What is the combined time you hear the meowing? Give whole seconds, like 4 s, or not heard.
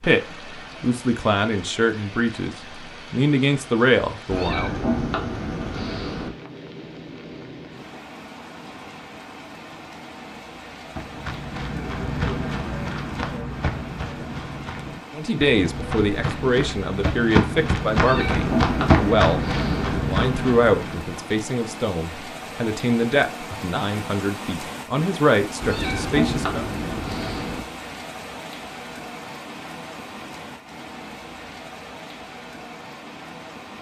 6 s.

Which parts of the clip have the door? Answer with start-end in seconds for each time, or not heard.
not heard.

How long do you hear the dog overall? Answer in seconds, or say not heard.
not heard.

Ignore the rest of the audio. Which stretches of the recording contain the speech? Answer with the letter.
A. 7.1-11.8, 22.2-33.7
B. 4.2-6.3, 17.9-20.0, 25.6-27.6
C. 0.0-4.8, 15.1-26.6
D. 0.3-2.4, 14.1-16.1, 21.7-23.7
C.